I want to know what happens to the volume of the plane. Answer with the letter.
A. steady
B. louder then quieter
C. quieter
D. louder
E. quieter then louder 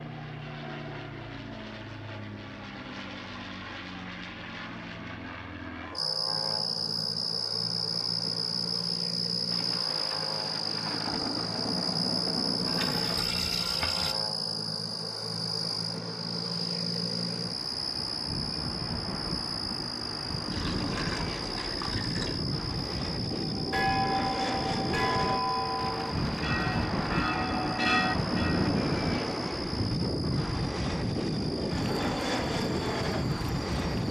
D.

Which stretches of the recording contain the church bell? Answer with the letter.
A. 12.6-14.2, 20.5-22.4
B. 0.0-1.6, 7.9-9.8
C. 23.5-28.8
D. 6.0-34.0
C.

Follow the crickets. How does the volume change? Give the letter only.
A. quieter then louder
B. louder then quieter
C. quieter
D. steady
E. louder
C.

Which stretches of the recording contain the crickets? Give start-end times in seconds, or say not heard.
6.0-34.0.